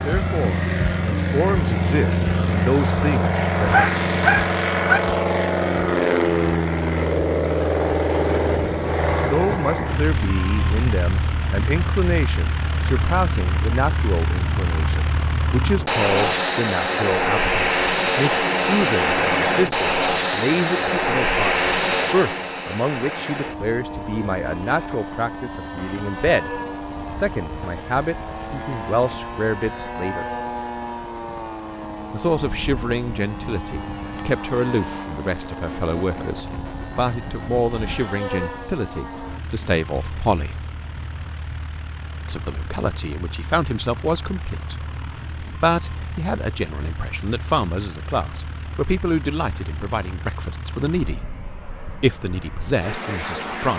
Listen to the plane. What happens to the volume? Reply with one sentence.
The volume of the plane goes down.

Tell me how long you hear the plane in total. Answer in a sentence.
You can hear the plane for 54 seconds altogether.